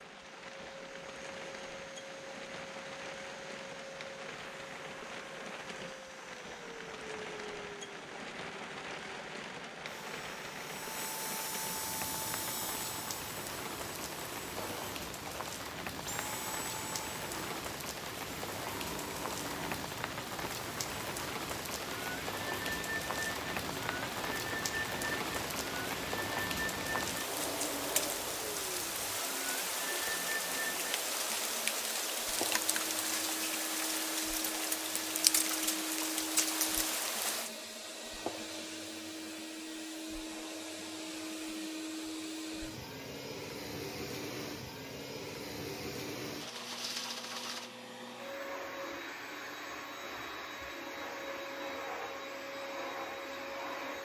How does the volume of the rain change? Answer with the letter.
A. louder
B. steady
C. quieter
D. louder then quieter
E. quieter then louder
A.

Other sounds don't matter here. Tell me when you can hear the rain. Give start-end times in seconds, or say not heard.
0.0-37.5.